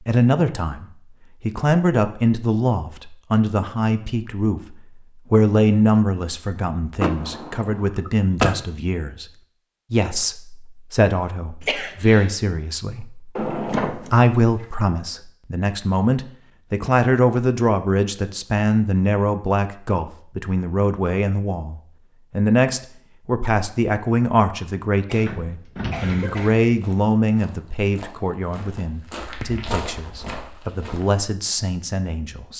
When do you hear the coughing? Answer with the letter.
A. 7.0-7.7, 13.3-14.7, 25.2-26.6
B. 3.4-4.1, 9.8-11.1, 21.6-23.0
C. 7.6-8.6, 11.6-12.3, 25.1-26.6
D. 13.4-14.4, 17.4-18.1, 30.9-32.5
C.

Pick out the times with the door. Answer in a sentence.
You can hear the door from 7.0 to 7.7 s, from 13.3 to 14.7 s and from 25.2 to 26.6 s.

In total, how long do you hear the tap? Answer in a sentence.
The tap can't be heard in this clip.